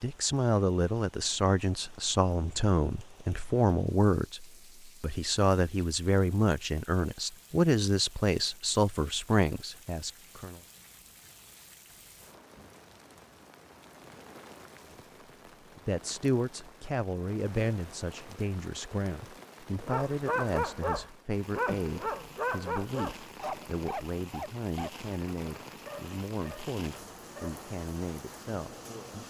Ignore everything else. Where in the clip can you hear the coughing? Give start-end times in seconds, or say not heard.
not heard.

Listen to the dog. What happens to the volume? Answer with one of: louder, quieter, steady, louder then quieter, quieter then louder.
quieter.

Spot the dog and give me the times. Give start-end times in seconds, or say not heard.
19.8-27.7.